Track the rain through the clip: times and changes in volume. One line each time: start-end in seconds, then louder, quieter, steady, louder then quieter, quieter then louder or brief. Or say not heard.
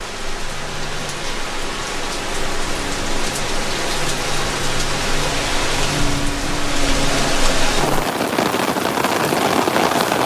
0.0-10.2 louder.